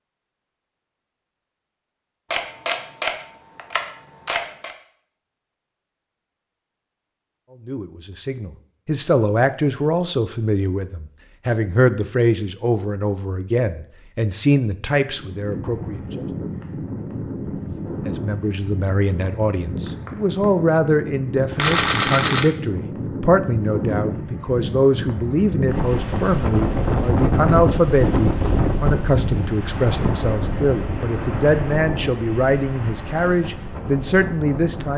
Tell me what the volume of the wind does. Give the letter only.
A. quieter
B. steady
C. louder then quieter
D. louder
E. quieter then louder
C.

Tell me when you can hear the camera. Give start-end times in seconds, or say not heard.
2.3-4.8, 21.6-22.4.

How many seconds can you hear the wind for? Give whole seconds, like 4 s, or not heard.
20 s.